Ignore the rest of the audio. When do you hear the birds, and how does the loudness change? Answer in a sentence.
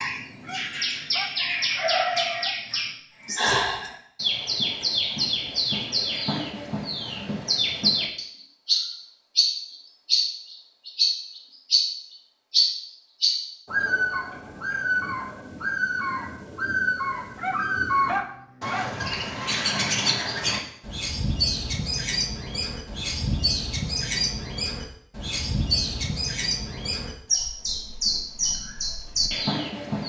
The birds can be heard from 0.0 to 30.0 s, at a steady volume.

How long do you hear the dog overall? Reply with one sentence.
The dog can be heard for 4 seconds in total.